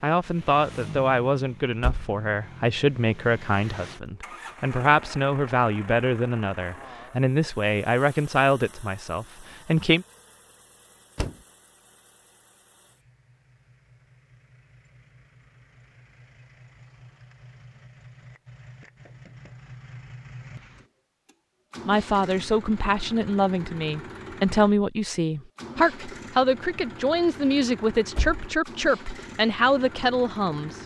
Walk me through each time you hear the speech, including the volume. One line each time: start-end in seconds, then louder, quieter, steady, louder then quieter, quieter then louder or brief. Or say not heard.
0.0-10.1 steady
21.9-30.8 steady.